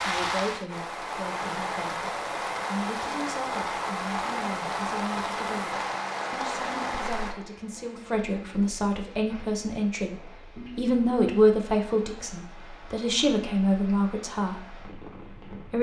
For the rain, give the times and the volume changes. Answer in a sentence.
You can hear the rain from 0.0 to 15.7 s, getting quieter.